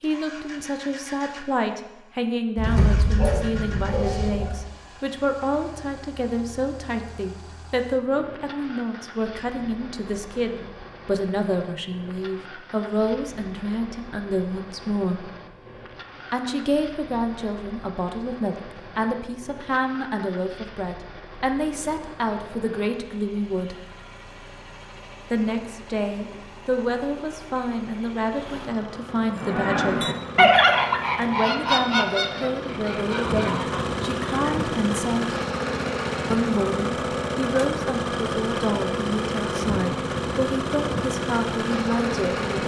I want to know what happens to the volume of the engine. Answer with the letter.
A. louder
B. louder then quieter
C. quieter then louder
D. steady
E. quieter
A.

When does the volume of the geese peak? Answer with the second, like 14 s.
31 s.